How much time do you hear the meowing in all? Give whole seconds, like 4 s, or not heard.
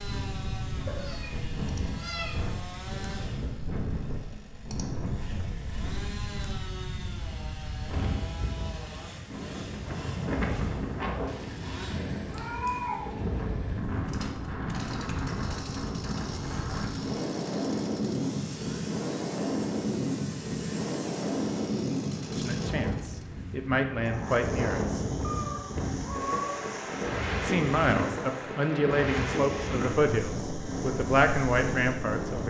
4 s.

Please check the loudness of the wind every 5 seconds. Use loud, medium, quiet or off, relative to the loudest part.
medium, medium, loud, loud, loud, loud, loud.